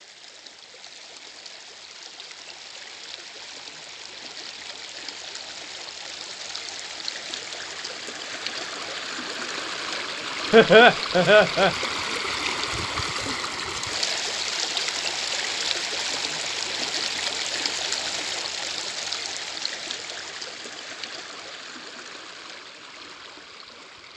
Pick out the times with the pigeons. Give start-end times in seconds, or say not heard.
not heard.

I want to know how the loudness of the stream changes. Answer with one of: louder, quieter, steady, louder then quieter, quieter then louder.
louder then quieter.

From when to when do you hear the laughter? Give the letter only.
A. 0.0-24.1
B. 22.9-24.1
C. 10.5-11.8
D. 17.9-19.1
C.